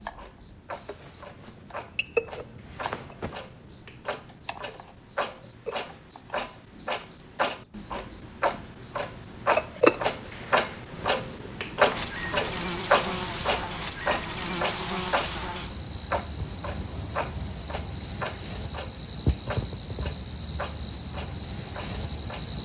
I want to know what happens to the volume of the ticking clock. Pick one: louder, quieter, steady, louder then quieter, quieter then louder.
louder then quieter.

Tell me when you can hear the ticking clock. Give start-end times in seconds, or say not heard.
0.0-22.5.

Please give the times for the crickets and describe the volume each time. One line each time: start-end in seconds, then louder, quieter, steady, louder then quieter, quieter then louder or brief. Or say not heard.
0.0-22.5 louder.